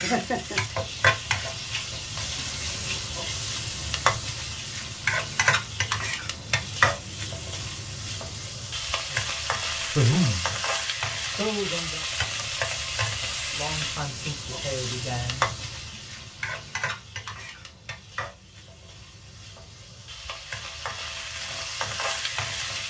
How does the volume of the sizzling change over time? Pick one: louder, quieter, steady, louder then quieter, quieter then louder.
quieter.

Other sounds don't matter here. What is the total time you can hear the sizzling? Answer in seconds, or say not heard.
23 s.